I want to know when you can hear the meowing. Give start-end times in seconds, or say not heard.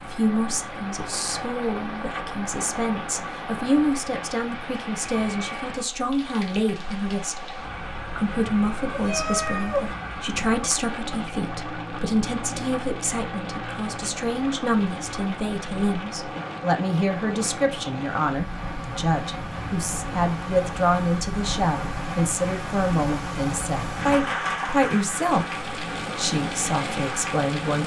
8.9-9.9, 19.4-20.2.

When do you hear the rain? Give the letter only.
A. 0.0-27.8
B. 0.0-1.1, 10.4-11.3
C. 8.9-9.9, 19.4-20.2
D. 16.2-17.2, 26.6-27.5
A.